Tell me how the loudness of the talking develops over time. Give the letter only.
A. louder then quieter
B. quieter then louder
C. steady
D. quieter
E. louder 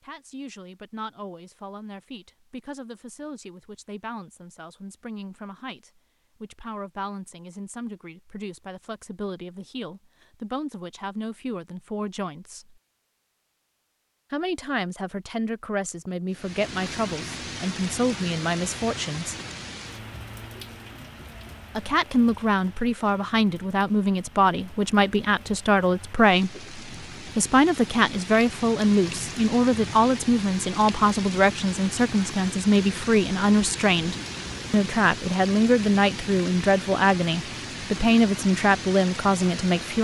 E.